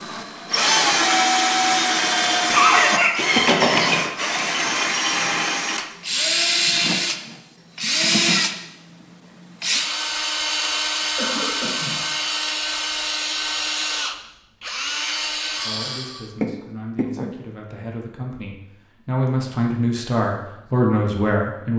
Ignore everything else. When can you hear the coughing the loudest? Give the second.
3 s.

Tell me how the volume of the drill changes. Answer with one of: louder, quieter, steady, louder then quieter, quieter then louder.
quieter.